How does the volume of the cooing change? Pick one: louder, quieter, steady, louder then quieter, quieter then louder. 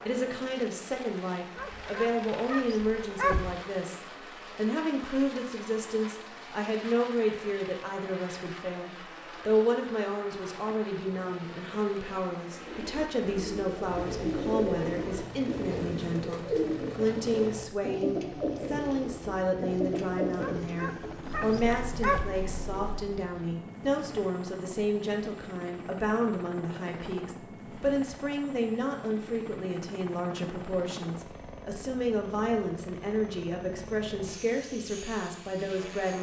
quieter.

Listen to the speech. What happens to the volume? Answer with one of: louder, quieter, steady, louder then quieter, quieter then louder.
steady.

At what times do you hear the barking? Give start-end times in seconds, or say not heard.
1.6-3.5, 20.4-22.2.